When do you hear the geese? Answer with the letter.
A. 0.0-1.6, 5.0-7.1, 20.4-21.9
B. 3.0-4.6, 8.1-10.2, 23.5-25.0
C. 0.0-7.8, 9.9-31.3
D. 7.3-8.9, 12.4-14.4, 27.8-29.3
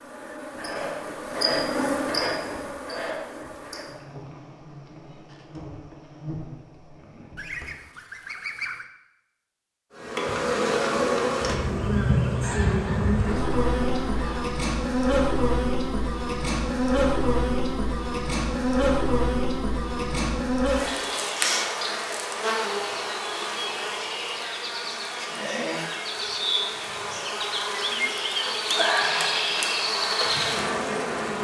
D.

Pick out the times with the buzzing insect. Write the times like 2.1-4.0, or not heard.
0.0-7.8, 9.9-31.3.